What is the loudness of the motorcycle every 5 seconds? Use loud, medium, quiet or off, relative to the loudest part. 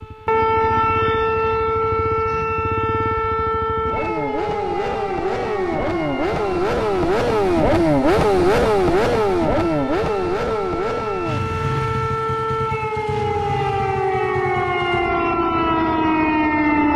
quiet, loud, medium, quiet.